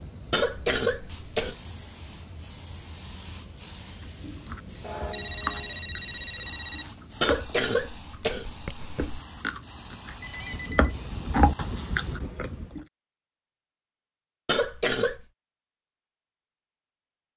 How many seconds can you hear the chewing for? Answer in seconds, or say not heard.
9 s.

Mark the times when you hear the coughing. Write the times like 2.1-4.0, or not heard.
0.3-1.6, 7.2-9.2, 14.4-15.2.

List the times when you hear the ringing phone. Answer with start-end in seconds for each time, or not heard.
4.8-6.8, 10.2-10.9.